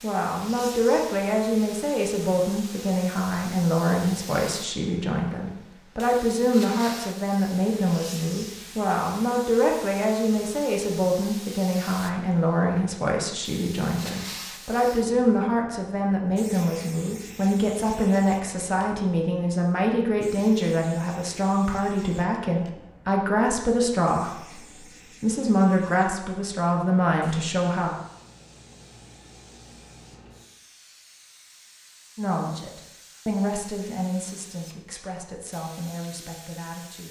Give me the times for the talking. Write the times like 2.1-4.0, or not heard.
0.0-27.9, 32.1-37.0.